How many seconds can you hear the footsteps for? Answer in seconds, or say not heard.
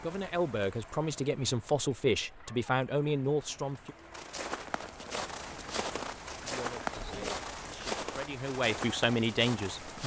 6 s.